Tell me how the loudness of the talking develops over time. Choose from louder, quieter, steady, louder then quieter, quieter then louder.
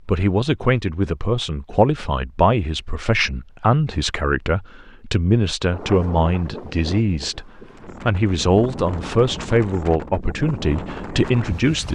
steady.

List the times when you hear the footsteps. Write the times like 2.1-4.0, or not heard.
not heard.